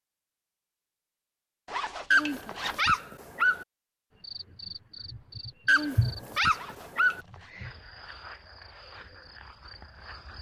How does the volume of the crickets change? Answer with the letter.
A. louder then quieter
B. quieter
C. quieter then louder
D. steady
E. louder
A.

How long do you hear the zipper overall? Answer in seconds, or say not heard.
2 s.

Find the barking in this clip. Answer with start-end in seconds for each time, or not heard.
2.1-3.6, 5.7-7.2.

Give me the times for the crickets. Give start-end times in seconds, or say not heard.
4.2-10.3.